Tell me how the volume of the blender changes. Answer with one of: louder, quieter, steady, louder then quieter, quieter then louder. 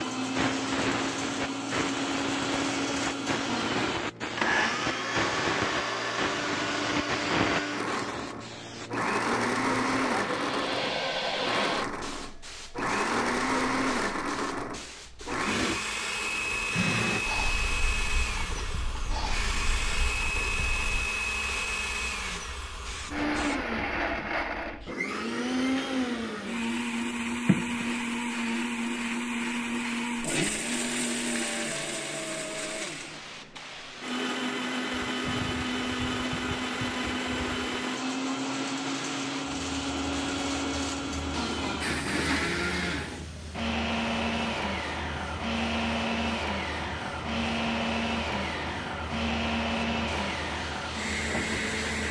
steady.